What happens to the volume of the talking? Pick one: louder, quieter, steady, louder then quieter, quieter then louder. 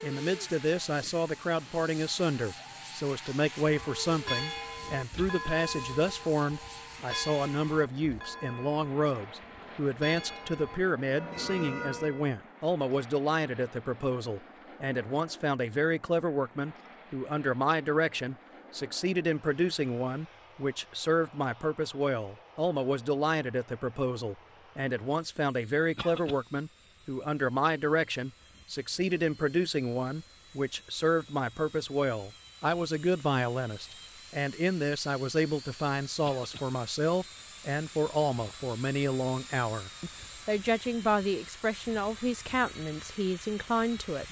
steady.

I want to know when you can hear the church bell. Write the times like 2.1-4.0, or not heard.
3.8-12.3.